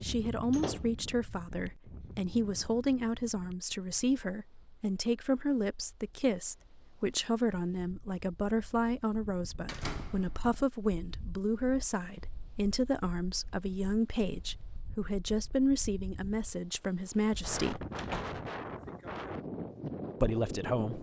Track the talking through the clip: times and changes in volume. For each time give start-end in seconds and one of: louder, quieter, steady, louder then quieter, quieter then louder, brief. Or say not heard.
0.0-17.9 steady
20.2-20.9 brief.